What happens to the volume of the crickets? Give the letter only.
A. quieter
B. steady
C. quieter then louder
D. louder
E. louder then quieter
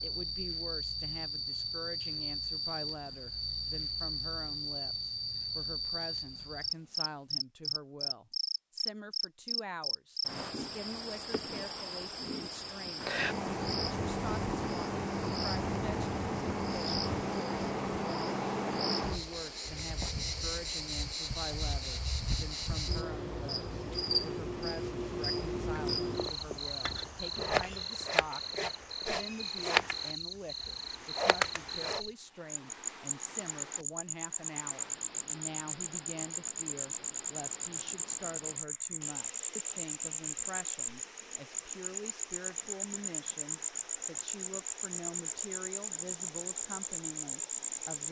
B.